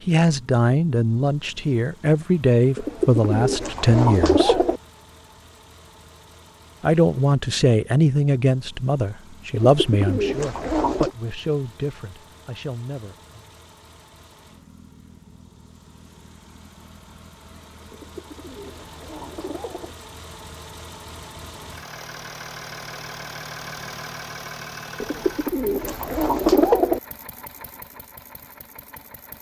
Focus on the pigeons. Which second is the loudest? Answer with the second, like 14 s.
27 s.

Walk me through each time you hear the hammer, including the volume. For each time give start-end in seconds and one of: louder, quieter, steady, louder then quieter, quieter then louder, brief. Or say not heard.
not heard.